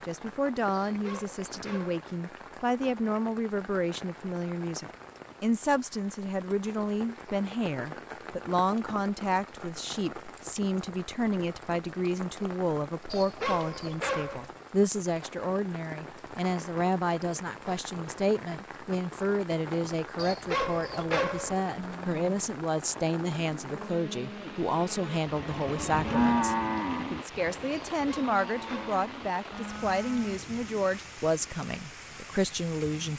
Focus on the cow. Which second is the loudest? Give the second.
26 s.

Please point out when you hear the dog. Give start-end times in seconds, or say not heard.
0.7-2.0, 13.1-14.5, 20.1-21.6, 27.9-28.9.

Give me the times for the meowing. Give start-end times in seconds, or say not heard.
not heard.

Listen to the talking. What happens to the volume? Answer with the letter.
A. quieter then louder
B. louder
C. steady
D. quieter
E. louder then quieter
C.